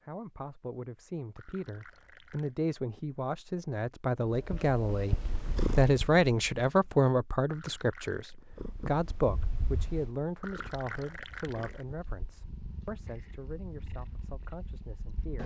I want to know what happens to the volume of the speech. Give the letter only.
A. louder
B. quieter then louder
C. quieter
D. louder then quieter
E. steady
D.